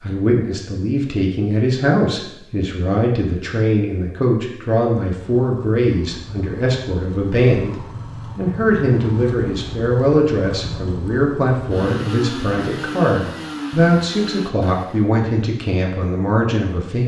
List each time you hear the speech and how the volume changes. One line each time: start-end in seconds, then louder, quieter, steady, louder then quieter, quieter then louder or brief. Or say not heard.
0.0-17.0 steady.